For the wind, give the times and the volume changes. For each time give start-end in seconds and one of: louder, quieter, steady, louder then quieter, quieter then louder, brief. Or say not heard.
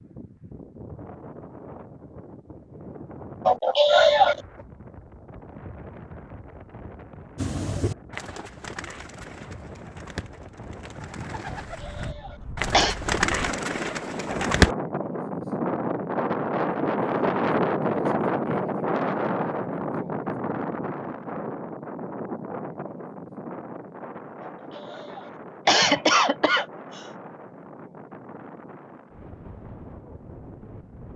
0.0-31.1 louder then quieter.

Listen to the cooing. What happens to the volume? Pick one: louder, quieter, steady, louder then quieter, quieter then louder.
quieter then louder.